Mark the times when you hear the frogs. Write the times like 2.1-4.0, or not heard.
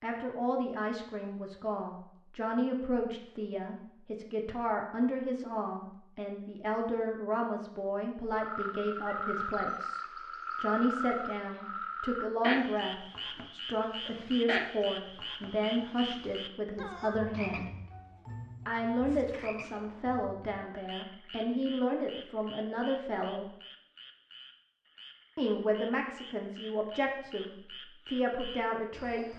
8.3-29.3.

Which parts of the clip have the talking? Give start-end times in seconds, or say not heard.
0.0-17.7, 18.6-23.5, 25.4-29.3.